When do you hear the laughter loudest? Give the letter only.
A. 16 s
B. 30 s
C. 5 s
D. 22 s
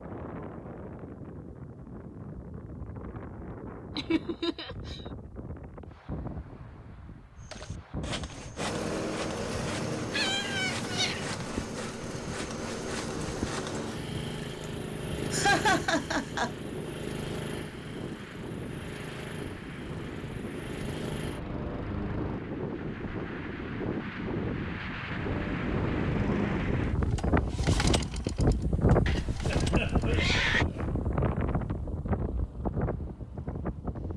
A.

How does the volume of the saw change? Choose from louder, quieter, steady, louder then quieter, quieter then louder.
steady.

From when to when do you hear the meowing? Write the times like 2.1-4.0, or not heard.
10.1-11.2, 29.1-30.6.